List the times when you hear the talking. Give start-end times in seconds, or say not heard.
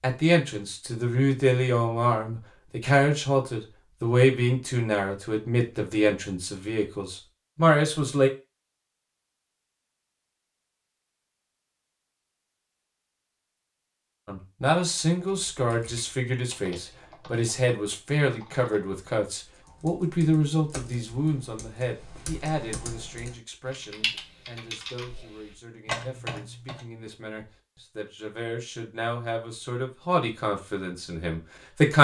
0.0-8.3, 14.2-31.9.